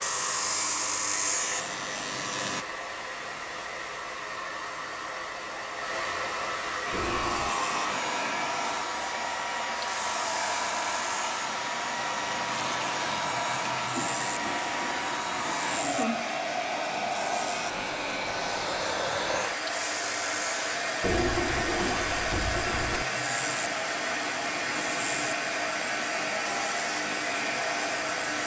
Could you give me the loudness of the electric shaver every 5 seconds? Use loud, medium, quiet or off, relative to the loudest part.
loud, medium, medium, medium, medium, medium.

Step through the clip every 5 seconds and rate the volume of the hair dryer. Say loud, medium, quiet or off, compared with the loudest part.
medium, loud, loud, loud, loud, loud.